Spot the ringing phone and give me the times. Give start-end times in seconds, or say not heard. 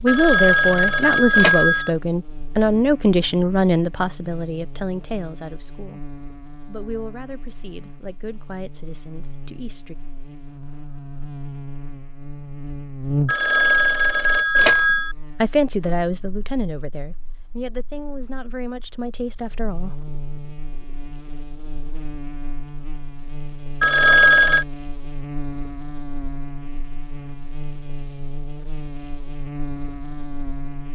0.1-1.9, 13.2-15.2, 23.8-24.6.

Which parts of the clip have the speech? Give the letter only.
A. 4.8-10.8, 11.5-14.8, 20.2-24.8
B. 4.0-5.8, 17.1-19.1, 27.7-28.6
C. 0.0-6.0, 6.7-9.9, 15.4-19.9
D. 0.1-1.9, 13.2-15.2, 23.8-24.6
C.